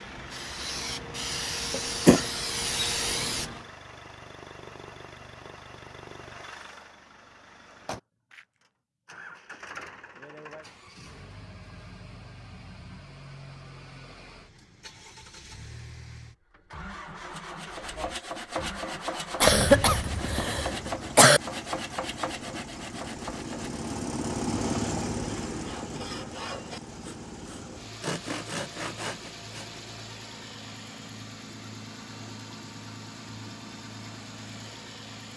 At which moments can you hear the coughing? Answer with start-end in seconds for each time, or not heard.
1.7-2.2, 19.4-21.4.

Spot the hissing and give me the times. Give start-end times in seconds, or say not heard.
0.0-3.7.